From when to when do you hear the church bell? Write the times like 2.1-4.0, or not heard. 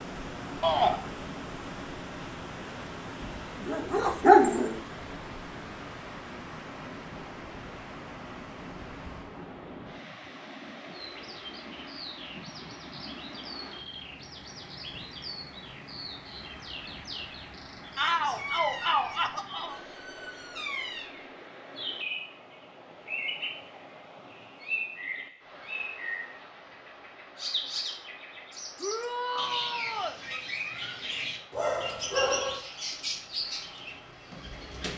not heard.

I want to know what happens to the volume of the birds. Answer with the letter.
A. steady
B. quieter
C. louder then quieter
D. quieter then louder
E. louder
E.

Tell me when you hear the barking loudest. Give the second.
4 s.